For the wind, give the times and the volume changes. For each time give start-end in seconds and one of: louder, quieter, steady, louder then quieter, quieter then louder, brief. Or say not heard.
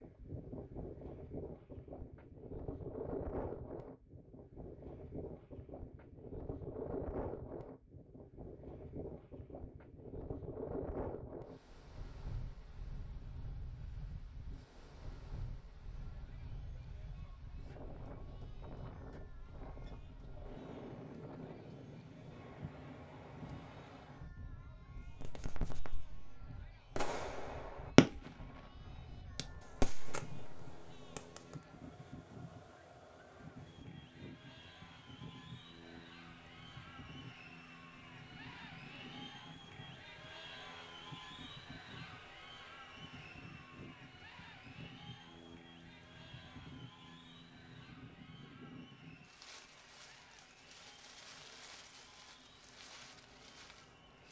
0.0-54.2 quieter.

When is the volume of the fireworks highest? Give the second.
28 s.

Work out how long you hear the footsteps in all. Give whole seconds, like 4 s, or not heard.
not heard.